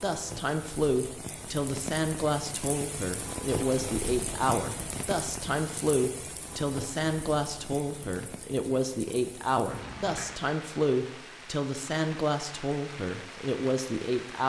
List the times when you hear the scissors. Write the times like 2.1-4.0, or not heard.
9.7-10.3.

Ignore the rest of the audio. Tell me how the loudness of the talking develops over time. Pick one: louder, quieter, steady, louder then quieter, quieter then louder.
steady.